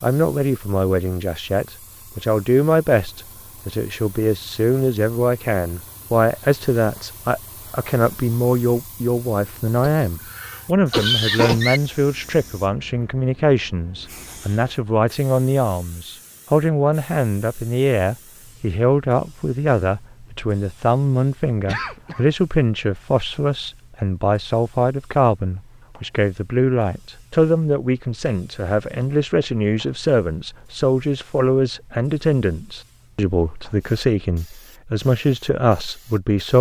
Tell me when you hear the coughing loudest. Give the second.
11 s.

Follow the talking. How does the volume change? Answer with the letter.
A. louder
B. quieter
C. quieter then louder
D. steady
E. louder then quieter
D.